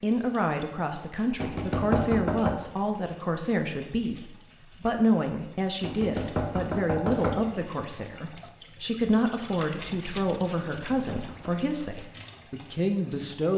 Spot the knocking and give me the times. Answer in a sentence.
You can hear the knocking from 1.4 to 2.5 s, from 5.8 to 7.5 s and from 10.8 to 11.6 s.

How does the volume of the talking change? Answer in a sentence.
The loudness of the talking stays about the same.